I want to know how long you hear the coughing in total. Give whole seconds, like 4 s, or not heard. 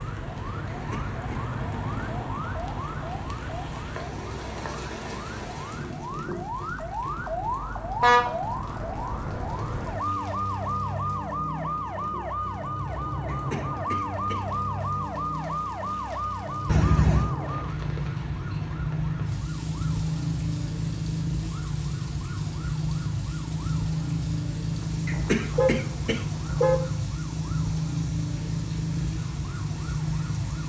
3 s.